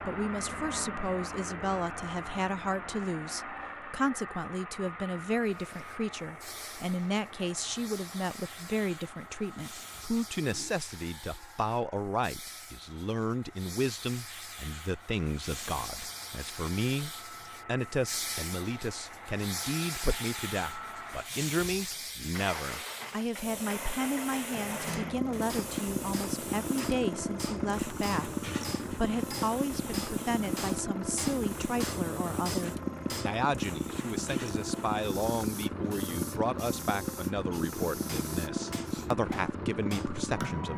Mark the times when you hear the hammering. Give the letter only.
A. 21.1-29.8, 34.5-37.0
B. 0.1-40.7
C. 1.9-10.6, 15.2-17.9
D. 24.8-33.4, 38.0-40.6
D.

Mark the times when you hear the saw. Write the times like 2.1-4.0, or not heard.
not heard.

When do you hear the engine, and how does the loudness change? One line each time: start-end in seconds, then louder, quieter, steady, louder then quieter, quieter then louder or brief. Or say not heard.
0.0-40.7 quieter then louder.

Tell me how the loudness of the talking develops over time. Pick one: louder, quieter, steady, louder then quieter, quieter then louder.
steady.